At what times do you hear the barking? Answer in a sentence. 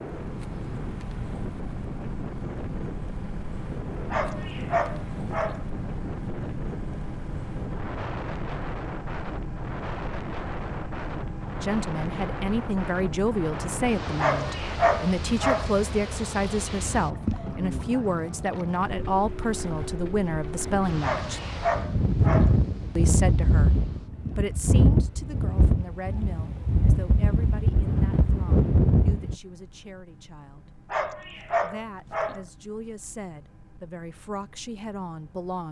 You can hear the barking from 4.1 to 5.6 s, from 14.2 to 15.7 s, from 21.0 to 22.6 s and from 30.9 to 32.4 s.